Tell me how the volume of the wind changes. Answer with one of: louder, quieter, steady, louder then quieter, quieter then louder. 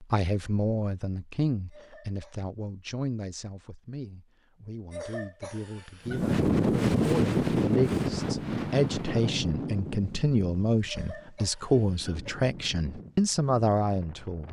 quieter.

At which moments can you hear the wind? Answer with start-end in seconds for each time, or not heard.
6.0-14.4.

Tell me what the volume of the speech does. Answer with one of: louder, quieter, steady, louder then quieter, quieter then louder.
quieter then louder.